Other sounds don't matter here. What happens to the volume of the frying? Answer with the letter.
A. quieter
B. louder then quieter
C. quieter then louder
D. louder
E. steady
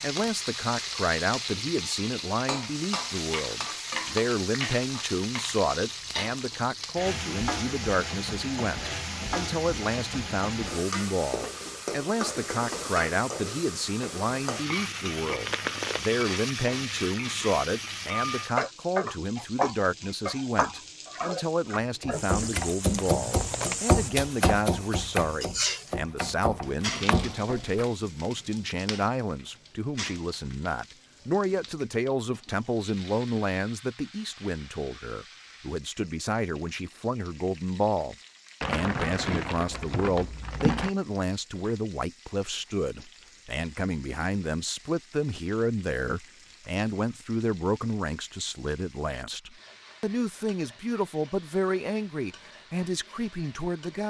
A.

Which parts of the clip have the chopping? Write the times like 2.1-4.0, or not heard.
22.0-27.9.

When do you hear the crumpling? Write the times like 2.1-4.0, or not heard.
15.4-16.1, 22.9-23.8, 38.6-40.9.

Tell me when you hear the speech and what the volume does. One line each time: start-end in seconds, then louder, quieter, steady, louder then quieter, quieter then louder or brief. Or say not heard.
0.0-54.0 steady.